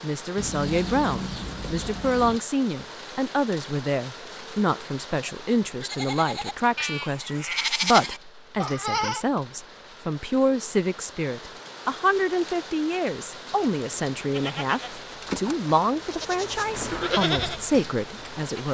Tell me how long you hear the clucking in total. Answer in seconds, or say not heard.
2 s.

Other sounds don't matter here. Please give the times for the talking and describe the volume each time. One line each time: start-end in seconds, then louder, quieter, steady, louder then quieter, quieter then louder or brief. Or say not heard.
0.0-18.6 steady.